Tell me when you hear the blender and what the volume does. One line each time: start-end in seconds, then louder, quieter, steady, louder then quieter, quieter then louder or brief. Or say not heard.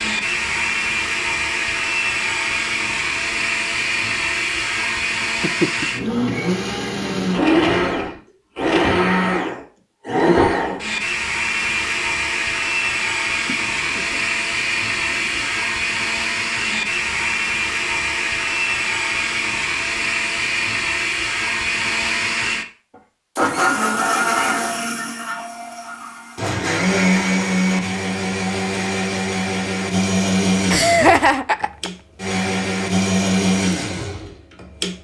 0.0-35.0 steady.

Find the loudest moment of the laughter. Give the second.
31 s.